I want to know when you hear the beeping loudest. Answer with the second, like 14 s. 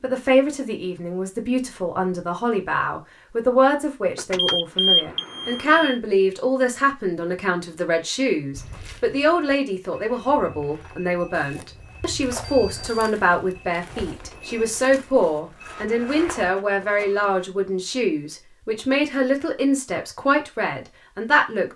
5 s.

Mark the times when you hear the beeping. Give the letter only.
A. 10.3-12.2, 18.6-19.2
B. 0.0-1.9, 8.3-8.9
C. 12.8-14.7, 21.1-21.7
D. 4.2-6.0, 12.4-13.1
D.